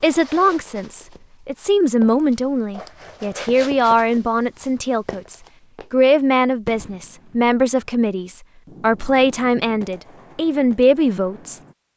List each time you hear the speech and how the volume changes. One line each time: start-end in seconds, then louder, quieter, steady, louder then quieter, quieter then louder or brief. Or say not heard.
0.0-11.6 steady.